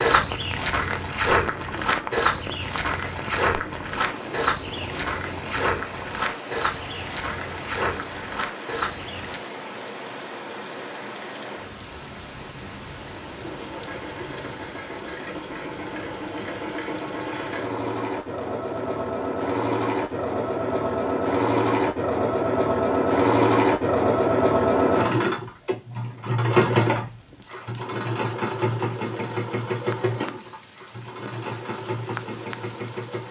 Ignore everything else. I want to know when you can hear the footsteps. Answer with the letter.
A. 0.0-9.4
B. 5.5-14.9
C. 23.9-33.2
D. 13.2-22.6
A.